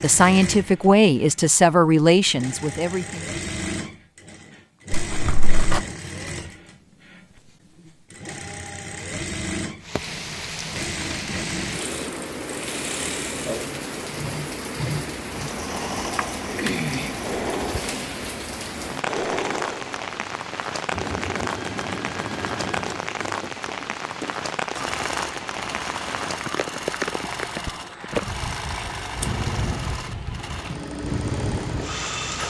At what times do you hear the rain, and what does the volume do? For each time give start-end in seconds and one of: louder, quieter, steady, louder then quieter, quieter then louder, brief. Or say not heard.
9.8-32.4 steady.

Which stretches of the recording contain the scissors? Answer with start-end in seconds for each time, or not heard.
4.9-5.8, 29.1-29.9.